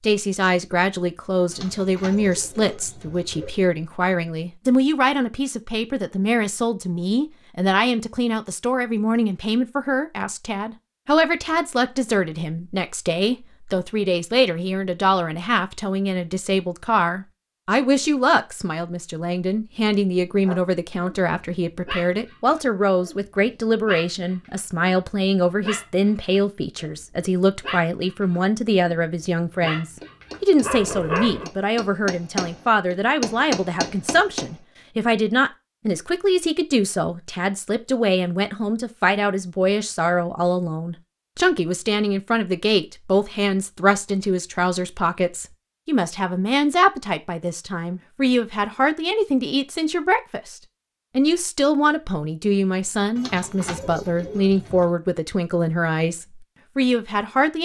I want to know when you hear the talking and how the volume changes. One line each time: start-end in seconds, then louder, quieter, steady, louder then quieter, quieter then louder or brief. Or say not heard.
0.0-57.5 steady.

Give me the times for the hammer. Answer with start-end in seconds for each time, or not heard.
29.6-34.5.